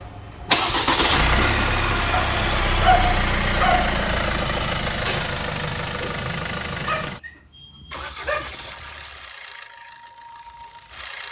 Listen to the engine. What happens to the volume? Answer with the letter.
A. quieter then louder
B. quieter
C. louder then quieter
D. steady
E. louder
B.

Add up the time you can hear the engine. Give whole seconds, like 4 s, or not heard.
11 s.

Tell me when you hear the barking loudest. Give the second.
3 s.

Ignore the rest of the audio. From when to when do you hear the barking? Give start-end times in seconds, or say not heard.
2.1-4.0, 6.8-8.6.